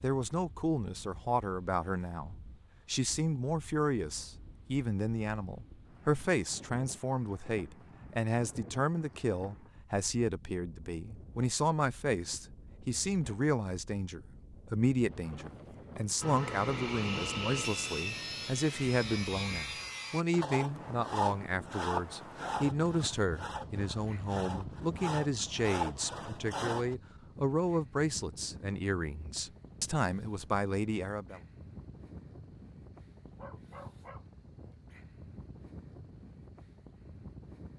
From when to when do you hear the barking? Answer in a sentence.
You can hear the barking from 33.4 to 34.8 s.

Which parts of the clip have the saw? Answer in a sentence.
You can hear the saw from 16.2 to 26.9 s.